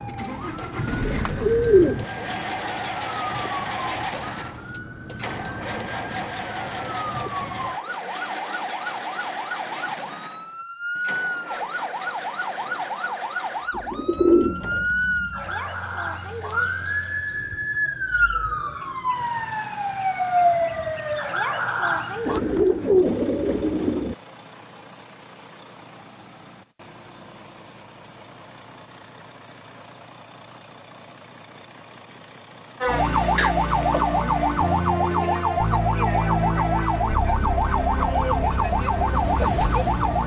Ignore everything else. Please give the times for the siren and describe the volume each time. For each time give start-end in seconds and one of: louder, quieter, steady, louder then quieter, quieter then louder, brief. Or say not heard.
0.0-22.4 louder
32.8-40.2 steady.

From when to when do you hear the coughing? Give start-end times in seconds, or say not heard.
not heard.